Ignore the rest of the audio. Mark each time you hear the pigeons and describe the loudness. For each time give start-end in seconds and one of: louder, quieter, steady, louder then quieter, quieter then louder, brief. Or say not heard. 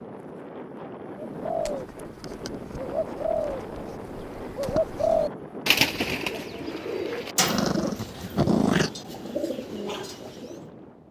1.1-10.7 louder then quieter.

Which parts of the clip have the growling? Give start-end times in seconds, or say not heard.
7.5-8.9.